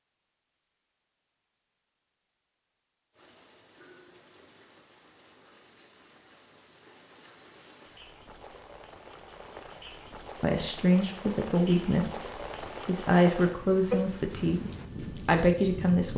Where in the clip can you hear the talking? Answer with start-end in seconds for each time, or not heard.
10.4-16.1.